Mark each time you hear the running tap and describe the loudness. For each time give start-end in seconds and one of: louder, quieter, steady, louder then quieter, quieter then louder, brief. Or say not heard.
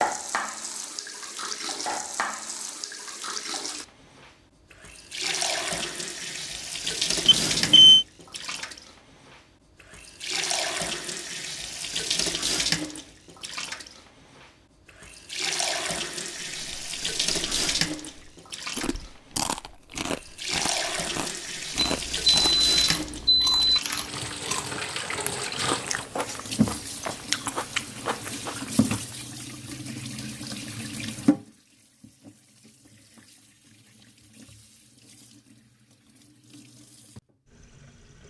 0.0-38.2 quieter.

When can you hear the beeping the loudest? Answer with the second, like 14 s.
8 s.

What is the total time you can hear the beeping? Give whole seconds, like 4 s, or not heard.
3 s.